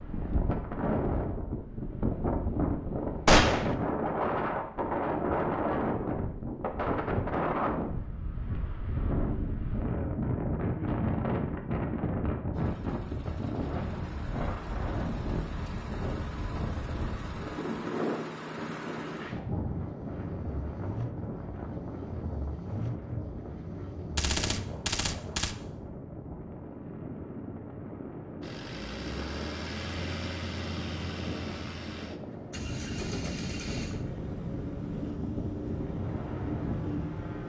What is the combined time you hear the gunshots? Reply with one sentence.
The gunshots can be heard for 2 seconds in total.